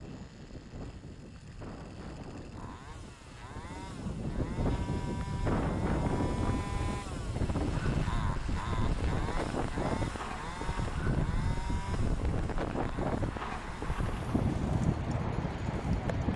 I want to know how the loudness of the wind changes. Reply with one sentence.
The volume of the wind goes up.